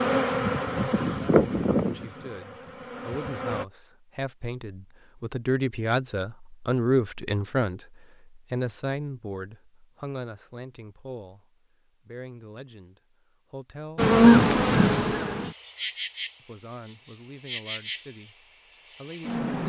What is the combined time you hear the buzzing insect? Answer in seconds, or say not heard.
9 s.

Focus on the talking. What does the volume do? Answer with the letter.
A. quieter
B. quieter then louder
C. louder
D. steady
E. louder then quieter
E.